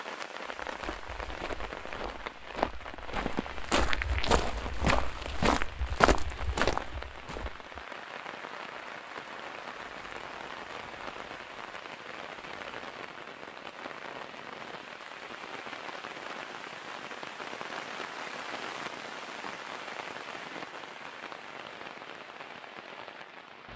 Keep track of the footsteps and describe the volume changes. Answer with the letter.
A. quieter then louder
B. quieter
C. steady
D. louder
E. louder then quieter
D.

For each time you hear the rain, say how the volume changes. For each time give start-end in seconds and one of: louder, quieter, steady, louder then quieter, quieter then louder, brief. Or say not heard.
0.0-23.7 steady.